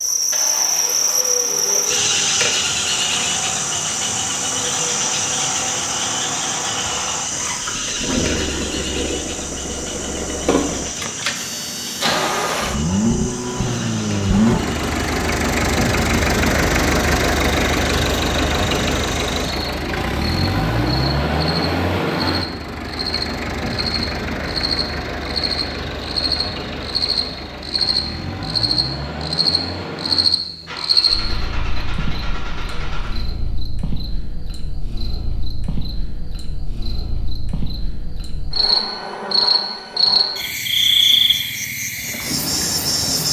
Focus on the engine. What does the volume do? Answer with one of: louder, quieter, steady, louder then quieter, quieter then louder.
louder then quieter.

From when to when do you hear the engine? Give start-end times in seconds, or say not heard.
0.0-33.2.